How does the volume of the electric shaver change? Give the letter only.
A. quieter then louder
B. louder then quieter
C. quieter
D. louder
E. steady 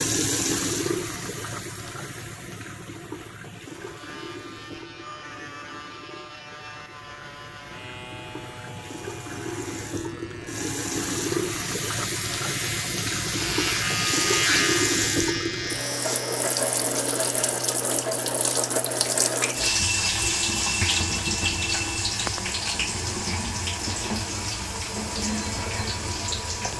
D.